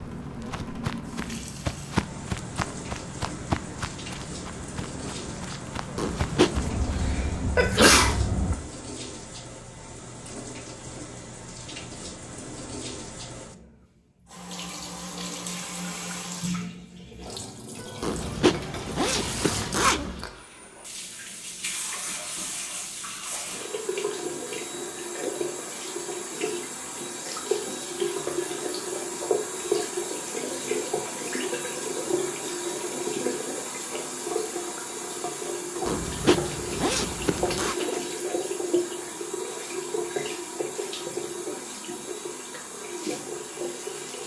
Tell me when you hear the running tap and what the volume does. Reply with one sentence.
The running tap can be heard from 0.0 to 44.2 s, getting louder.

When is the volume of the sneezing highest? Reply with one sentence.
The volume of the sneezing peaks at 8 seconds.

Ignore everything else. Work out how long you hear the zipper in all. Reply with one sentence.
You can hear the zipper for 5 seconds altogether.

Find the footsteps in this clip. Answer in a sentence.
You can hear the footsteps from 0.0 to 7.2 s.